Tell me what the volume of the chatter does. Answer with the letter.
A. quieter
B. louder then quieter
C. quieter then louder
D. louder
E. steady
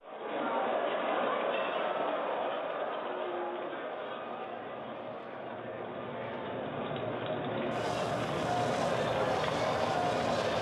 C.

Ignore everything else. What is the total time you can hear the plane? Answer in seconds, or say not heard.
9 s.